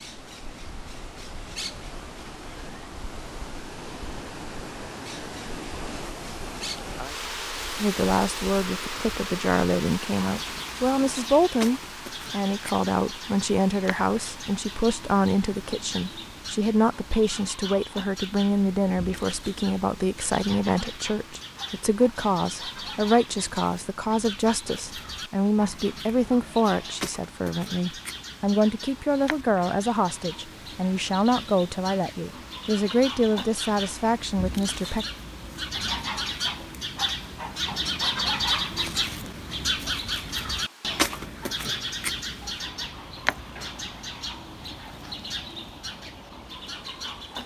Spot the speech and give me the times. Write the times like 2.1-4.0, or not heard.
7.8-35.0.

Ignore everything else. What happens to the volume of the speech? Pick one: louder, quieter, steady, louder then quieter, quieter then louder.
steady.